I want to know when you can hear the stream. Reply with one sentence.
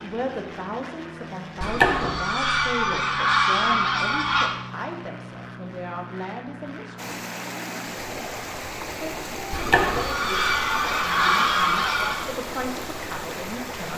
You can hear the stream from 7.0 to 13.9 s.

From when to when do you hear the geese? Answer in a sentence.
You can hear the geese from 1.6 to 4.5 s and from 9.5 to 12.2 s.